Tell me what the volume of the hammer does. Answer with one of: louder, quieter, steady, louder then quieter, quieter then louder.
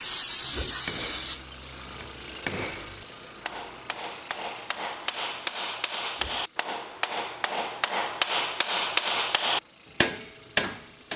louder.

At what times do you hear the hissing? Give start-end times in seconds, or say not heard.
0.0-2.2.